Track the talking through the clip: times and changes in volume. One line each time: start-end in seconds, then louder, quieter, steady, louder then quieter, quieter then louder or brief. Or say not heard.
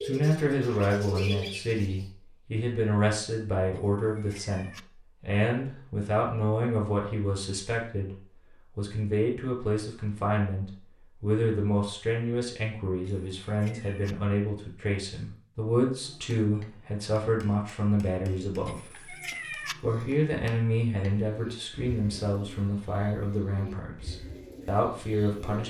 0.0-19.0 steady
19.8-25.6 quieter then louder.